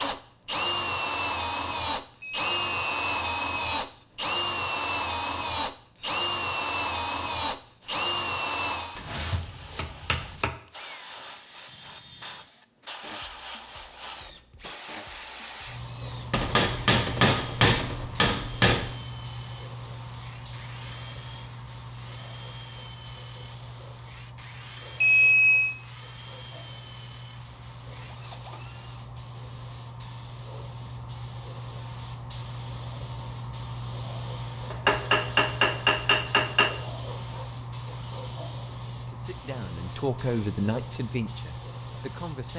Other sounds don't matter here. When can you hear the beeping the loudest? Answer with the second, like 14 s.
25 s.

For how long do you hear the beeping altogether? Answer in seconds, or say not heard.
2 s.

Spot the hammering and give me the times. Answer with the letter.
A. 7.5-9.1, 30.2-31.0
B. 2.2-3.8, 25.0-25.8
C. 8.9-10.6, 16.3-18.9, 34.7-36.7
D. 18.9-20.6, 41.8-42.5
C.